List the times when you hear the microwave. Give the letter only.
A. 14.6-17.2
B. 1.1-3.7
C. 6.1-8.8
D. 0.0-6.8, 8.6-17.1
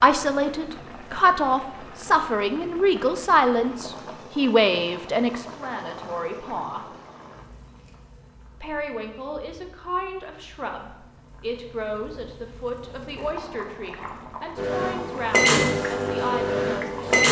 A.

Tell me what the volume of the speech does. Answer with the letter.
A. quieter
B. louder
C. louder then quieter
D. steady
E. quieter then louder
A.